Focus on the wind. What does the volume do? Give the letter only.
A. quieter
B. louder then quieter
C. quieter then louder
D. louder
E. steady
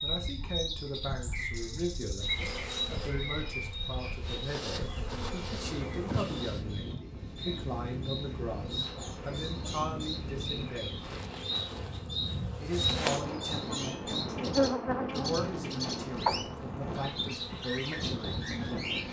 D.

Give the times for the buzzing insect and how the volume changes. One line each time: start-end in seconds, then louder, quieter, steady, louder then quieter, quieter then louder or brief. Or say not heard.
2.2-6.7 quieter then louder
8.4-19.0 louder then quieter.